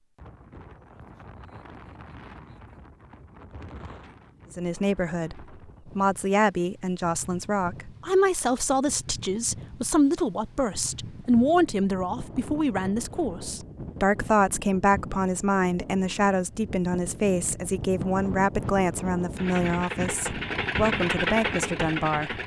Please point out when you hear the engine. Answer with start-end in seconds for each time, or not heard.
19.4-22.4.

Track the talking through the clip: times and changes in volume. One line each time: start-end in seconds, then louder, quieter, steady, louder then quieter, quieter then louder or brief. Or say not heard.
4.5-22.4 steady.